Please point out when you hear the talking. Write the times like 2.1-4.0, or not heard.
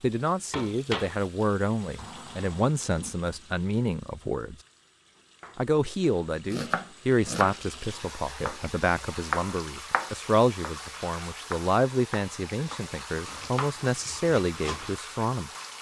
0.0-4.5, 5.5-15.5.